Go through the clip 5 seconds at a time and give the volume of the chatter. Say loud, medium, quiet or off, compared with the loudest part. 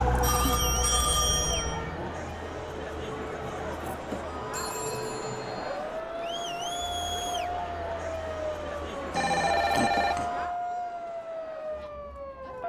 loud, loud, medium.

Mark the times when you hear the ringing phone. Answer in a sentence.
You can hear the ringing phone from 0.0 to 1.8 s, from 4.5 to 5.8 s and from 9.1 to 10.3 s.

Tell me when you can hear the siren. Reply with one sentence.
You can hear the siren from 0.0 to 12.6 s.